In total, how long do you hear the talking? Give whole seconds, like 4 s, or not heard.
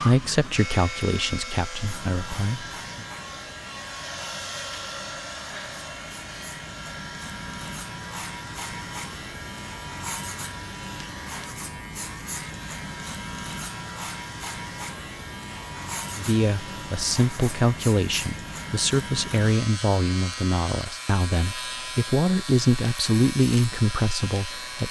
12 s.